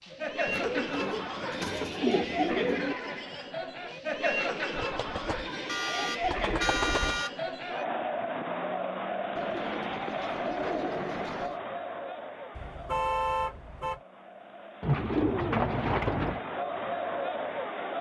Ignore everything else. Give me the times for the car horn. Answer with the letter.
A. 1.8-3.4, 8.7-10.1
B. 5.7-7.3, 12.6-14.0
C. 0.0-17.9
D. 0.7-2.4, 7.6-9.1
B.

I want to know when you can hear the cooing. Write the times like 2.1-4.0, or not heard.
0.5-3.0, 4.8-7.2, 9.3-11.6, 14.8-16.4.